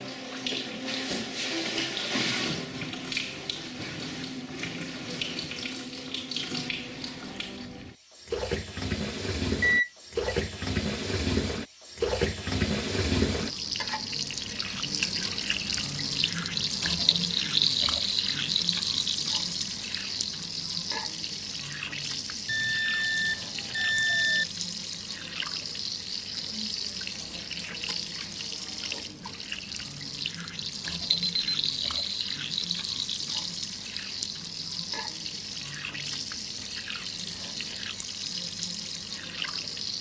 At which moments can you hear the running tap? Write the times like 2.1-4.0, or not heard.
0.0-39.9.